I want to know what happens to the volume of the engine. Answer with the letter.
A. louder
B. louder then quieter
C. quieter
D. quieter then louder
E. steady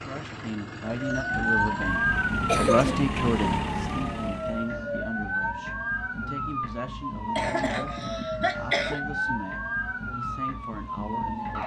A.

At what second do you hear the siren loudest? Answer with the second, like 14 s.
2 s.